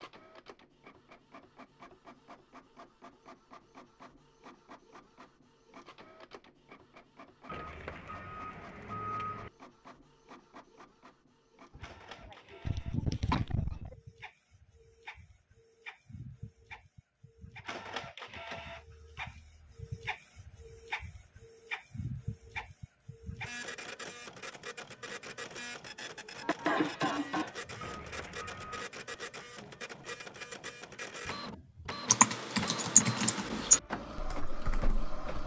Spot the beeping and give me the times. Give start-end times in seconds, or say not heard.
7.5-9.5, 27.8-28.9.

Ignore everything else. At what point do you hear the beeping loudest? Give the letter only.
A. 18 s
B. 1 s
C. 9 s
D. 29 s
C.